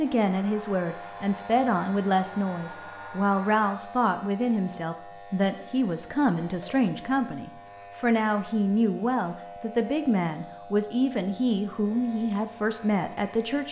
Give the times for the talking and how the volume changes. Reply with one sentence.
The talking can be heard from 0.0 to 13.6 s, at a steady volume.